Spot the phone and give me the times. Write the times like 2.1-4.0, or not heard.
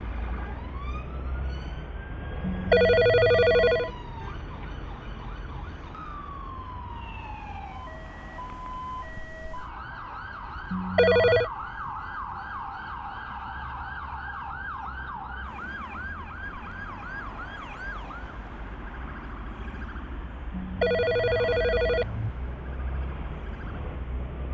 2.4-3.9, 10.7-11.5, 20.5-22.3.